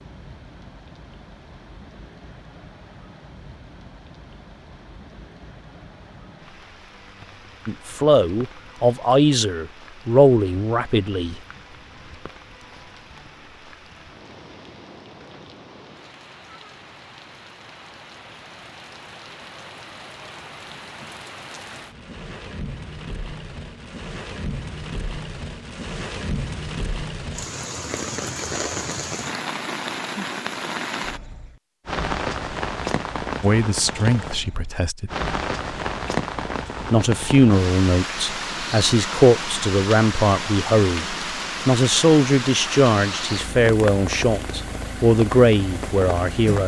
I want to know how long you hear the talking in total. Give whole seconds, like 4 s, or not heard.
15 s.